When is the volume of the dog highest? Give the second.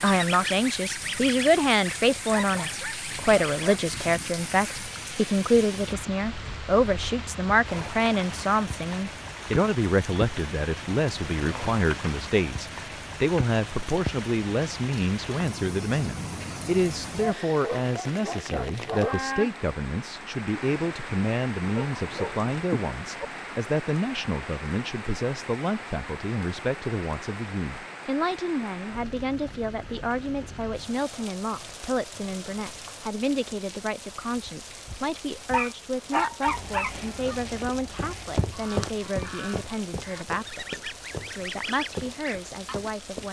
36 s.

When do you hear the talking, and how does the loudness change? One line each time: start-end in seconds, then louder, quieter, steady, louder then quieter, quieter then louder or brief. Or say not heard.
0.0-43.2 quieter.